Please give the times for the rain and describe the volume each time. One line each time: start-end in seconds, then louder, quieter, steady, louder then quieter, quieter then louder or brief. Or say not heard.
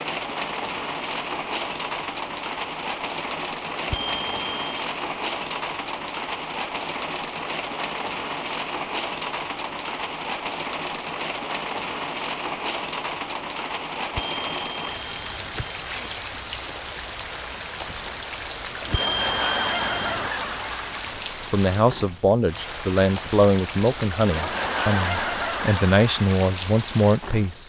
0.0-27.6 steady.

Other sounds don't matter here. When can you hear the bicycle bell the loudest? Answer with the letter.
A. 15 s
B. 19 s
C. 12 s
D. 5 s
B.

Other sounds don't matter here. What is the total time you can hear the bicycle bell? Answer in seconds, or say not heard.
4 s.